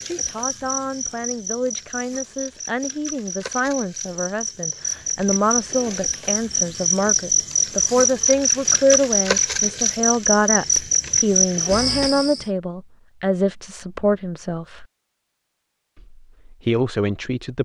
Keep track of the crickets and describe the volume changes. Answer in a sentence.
The volume of the crickets goes up.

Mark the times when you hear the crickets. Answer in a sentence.
You can hear the crickets from 0.0 to 12.4 s.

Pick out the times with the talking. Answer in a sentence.
The talking can be heard from 0.0 to 14.8 s and from 15.9 to 17.5 s.